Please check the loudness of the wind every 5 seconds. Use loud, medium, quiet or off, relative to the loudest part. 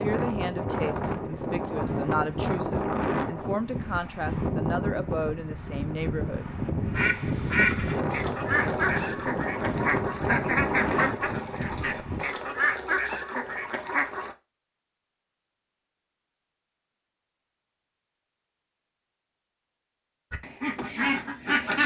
loud, loud, loud, off, off.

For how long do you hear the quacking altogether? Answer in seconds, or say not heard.
9 s.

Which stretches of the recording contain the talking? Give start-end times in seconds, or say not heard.
0.0-6.5.